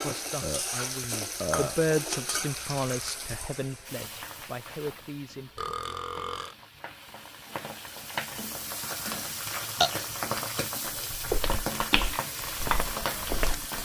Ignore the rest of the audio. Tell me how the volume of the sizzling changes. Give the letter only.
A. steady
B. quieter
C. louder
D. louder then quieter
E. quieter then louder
E.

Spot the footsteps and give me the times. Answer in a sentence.
You can hear the footsteps from 11.1 to 13.7 s.